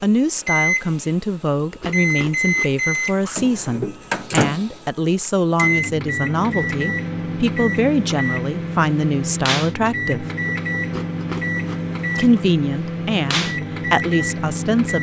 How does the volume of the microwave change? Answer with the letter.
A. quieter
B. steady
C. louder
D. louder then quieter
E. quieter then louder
B.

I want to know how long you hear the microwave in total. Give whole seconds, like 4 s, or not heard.
15 s.